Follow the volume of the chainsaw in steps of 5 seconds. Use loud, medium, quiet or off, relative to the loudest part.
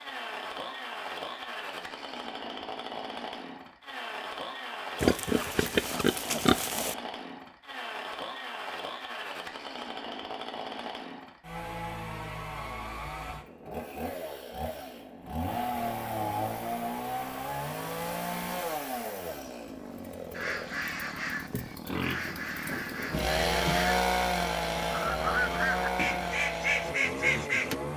medium, medium, medium, loud, loud, loud.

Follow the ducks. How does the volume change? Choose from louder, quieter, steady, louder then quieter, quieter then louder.
louder.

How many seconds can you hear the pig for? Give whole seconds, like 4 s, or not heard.
4 s.